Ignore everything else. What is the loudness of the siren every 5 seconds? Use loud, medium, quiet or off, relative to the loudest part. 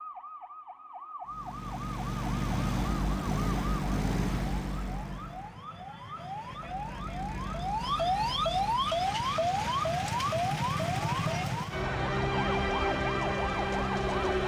quiet, loud, loud.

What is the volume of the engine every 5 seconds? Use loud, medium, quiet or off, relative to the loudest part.
loud, medium, off.